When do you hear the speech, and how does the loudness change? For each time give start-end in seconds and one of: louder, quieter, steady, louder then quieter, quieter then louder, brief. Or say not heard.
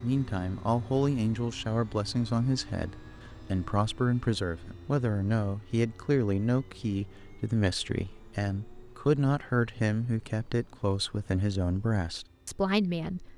0.0-13.3 steady.